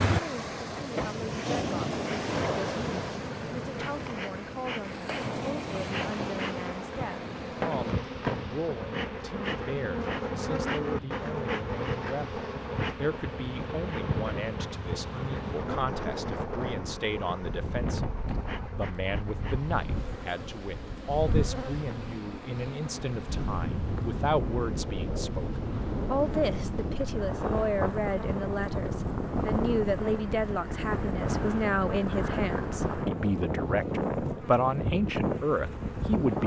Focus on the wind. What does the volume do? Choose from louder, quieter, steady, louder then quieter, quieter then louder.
quieter then louder.